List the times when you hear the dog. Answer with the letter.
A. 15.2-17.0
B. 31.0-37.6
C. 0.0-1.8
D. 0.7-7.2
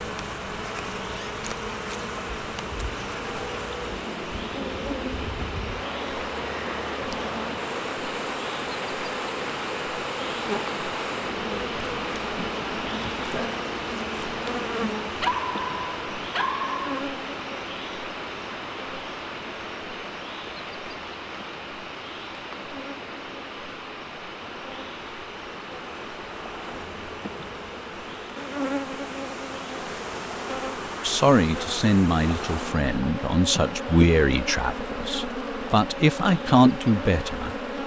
A.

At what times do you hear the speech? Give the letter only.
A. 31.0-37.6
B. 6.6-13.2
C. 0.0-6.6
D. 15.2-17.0
A.